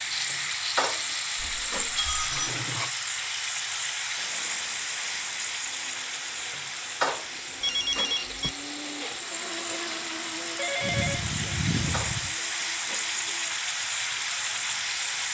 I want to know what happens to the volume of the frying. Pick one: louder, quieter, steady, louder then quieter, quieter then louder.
quieter then louder.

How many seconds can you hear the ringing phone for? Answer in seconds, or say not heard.
4 s.